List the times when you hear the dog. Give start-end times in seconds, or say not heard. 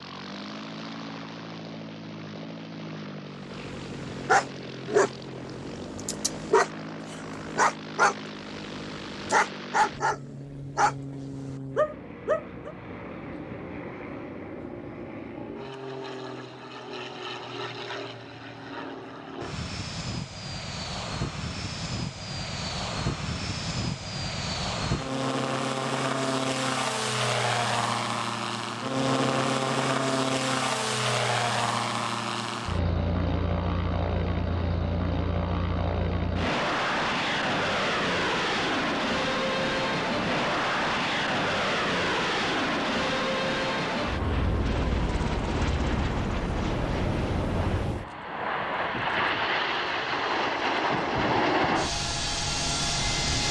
3.5-12.7.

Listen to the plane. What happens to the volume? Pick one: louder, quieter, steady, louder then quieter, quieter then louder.
louder.